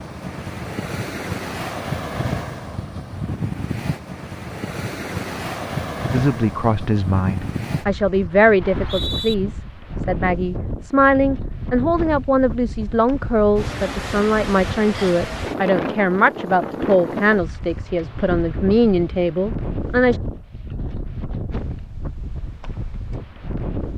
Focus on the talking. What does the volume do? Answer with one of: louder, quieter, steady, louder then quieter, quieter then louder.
steady.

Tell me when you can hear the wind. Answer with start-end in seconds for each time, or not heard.
0.0-23.9.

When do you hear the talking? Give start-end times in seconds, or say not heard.
6.1-20.2.